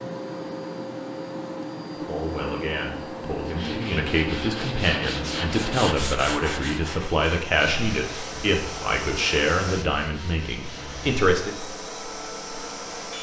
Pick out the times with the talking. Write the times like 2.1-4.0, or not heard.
2.0-11.6.